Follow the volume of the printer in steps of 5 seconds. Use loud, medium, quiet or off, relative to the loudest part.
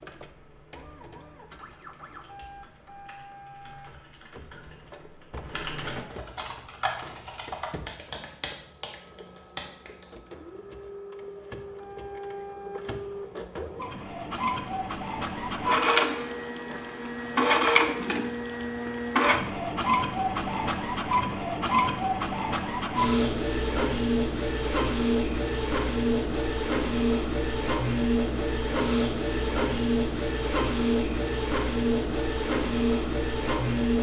quiet, quiet, medium, loud, loud, loud, loud.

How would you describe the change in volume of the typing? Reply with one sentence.
The volume of the typing goes up.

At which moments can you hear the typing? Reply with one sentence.
You can hear the typing from 0.0 to 10.3 s.